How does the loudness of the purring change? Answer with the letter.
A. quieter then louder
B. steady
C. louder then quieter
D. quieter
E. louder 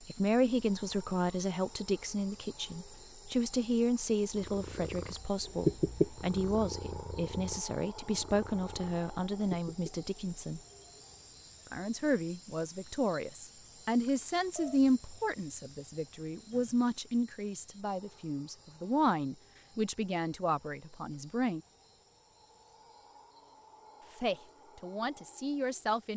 D.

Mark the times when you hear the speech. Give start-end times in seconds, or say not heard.
0.1-10.6, 11.7-21.6, 24.2-26.1.